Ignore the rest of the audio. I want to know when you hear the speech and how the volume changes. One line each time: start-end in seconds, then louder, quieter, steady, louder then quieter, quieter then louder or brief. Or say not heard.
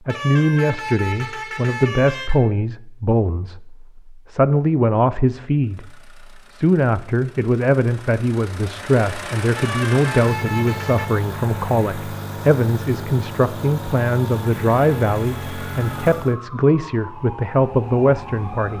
0.1-18.7 steady.